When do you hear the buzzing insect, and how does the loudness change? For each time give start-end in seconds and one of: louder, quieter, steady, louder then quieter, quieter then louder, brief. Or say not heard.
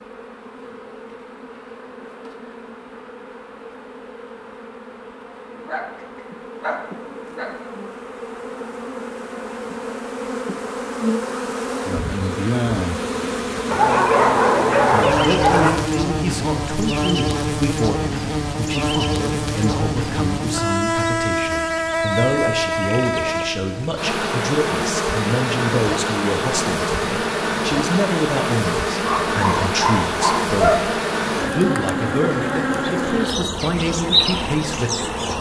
0.0-35.3 louder.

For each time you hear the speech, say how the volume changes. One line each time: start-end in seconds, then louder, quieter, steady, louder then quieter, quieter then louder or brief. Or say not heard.
15.2-35.2 steady.